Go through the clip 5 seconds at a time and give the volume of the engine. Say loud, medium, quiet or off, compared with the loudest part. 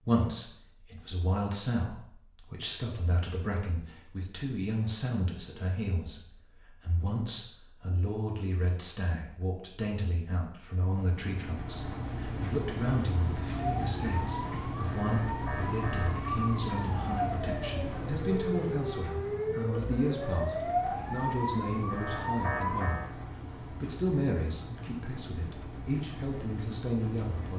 off, off, loud, loud, medium, medium.